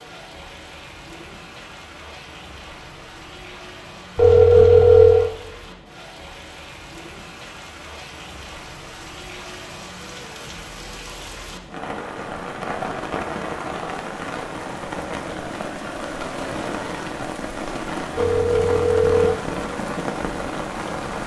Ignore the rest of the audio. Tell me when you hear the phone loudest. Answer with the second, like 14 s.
5 s.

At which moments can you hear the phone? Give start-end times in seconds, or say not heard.
4.2-5.3, 18.1-19.4.